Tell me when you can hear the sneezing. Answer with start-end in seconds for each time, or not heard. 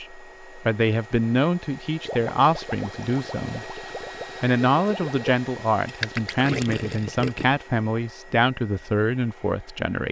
not heard.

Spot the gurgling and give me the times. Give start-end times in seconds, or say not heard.
2.0-7.5.